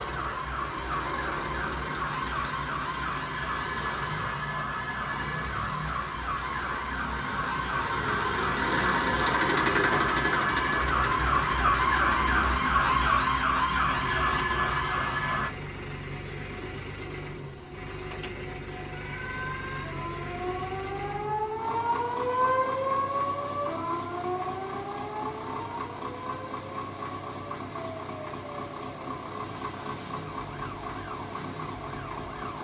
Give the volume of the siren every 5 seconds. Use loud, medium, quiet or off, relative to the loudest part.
medium, medium, loud, medium, medium, quiet, quiet.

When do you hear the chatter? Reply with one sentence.
You can't hear the chatter here.